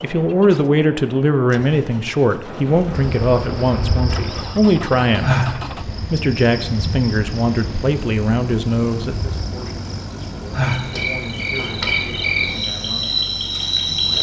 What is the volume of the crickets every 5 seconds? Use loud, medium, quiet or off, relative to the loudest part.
medium, medium, loud.